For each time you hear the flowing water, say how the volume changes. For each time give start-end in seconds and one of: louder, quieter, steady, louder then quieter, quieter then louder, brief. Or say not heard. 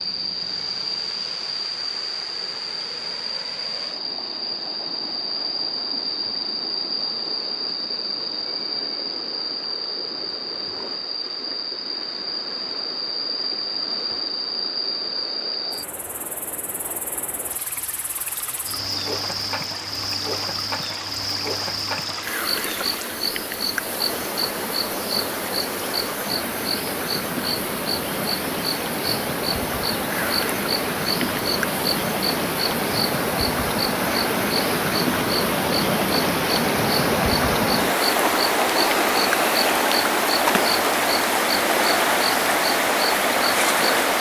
0.0-44.1 louder.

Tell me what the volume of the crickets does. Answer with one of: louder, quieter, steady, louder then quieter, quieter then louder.
steady.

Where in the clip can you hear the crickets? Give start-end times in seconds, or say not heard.
0.0-44.1.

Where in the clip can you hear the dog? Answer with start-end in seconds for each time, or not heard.
not heard.